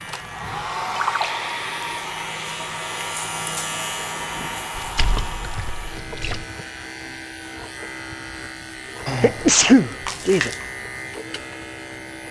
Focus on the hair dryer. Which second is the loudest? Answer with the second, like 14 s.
1 s.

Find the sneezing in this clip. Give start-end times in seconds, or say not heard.
9.1-10.5.